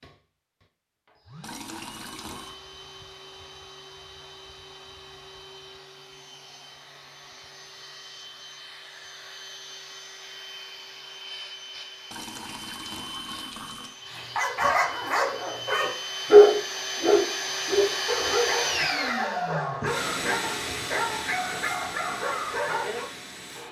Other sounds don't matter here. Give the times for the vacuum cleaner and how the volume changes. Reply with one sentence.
The vacuum cleaner can be heard from 0.0 to 23.6 s, getting louder.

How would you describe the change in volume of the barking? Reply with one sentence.
The loudness of the barking goes up, then down.